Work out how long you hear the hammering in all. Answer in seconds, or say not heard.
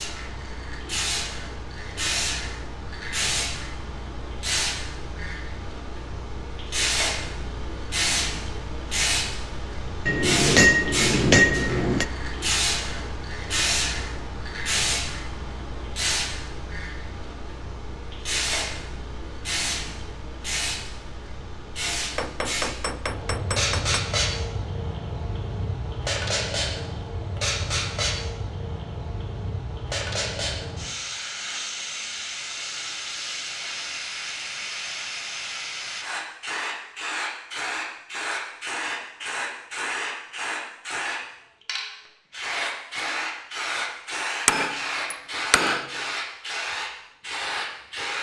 5 s.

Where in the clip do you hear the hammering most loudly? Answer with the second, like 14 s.
11 s.